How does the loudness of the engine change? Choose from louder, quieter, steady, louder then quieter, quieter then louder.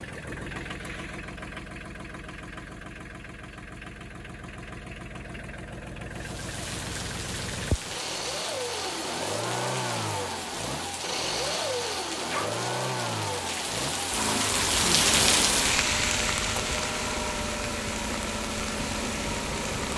louder.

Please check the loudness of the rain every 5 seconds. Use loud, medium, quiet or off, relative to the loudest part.
off, medium, loud, loud.